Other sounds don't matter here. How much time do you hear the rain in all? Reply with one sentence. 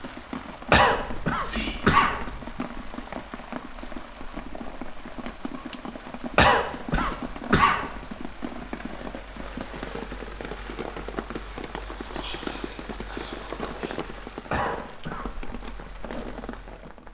The rain can be heard for 17 seconds in total.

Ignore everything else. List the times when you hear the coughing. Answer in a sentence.
The coughing can be heard from 0.7 to 2.6 s, from 6.3 to 7.9 s and from 14.5 to 15.2 s.